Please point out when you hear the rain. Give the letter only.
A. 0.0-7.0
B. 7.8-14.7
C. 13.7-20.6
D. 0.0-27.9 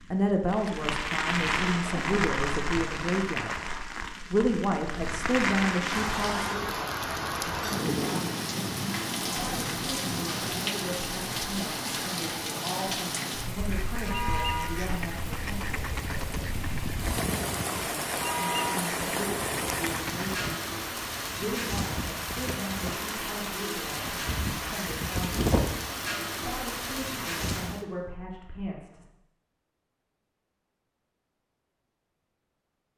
D.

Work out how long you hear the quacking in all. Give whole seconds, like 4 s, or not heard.
7 s.